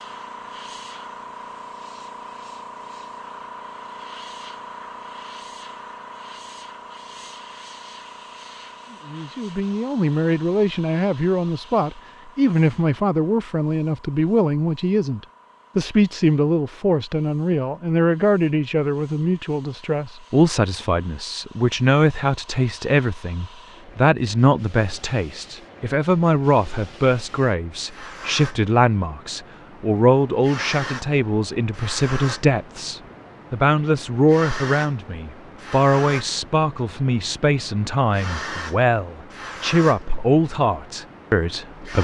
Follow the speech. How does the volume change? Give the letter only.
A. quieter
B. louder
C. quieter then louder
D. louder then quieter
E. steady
E.